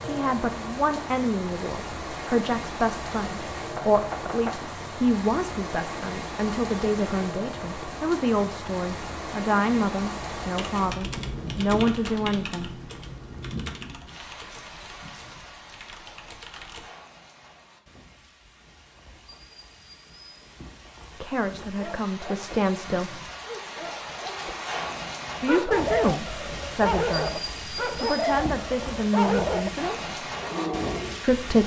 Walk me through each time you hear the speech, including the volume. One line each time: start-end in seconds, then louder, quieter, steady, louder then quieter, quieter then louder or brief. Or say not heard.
0.0-12.8 steady
21.2-23.2 brief
25.4-30.0 quieter then louder
31.2-31.6 brief.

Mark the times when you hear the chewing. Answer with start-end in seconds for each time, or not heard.
not heard.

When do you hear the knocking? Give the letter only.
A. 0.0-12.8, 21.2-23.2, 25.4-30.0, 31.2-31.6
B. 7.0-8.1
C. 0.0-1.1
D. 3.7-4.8
D.